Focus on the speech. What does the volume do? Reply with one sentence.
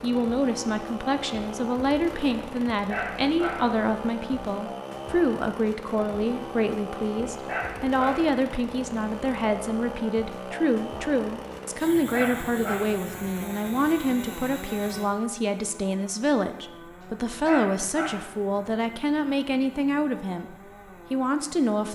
The loudness of the speech stays about the same.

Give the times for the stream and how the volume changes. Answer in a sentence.
The stream can't be heard in this clip.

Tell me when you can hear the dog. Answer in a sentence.
The dog can be heard from 2.9 to 3.7 s, from 7.5 to 8.3 s, from 12.1 to 12.9 s and from 17.4 to 18.2 s.